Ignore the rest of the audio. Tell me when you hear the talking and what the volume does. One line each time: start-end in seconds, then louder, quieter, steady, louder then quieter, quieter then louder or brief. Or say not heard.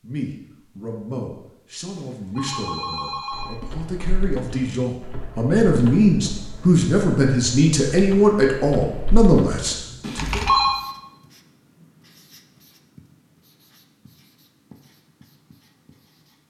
0.0-10.4 louder.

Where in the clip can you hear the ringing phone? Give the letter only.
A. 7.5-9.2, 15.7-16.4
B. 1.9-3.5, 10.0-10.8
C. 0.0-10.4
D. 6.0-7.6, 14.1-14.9
B.